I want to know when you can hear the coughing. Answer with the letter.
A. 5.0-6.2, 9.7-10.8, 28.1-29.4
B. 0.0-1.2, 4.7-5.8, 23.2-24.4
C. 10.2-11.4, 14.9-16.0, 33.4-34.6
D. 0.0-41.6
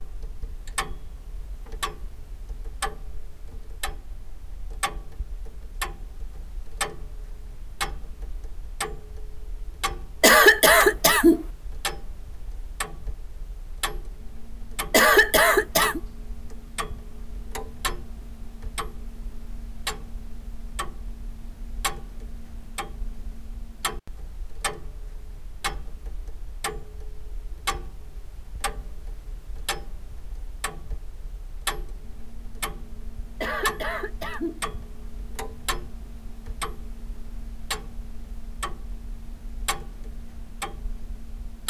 C.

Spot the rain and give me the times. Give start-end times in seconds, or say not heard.
not heard.